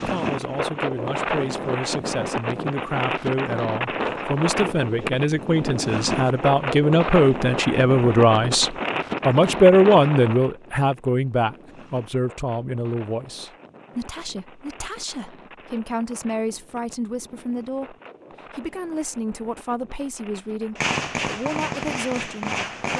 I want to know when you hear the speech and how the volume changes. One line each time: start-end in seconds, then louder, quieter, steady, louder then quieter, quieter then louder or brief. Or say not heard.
0.0-17.9 louder then quieter
18.6-22.9 steady.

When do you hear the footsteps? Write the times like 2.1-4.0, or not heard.
not heard.